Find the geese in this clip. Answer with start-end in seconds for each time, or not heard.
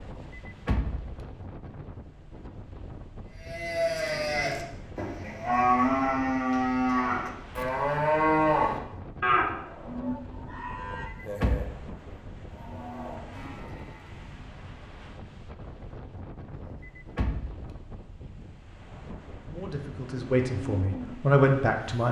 not heard.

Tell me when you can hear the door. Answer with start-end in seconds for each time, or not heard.
0.0-1.2, 10.8-11.8, 16.5-17.8.